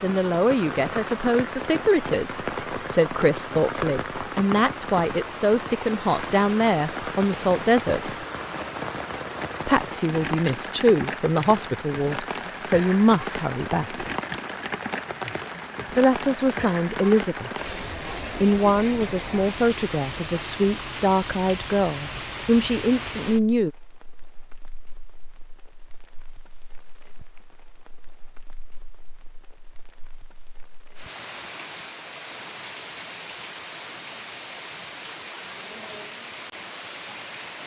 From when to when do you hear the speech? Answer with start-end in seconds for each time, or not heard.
0.0-8.2, 9.7-14.1, 15.9-17.5, 18.4-23.7.